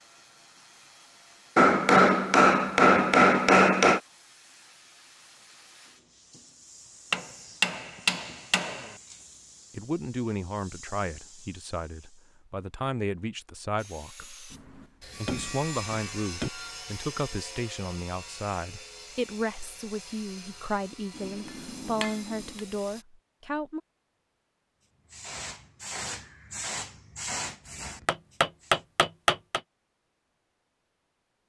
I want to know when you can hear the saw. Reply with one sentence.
You can hear the saw from 13.8 to 23.1 s.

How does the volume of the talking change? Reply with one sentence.
The loudness of the talking stays about the same.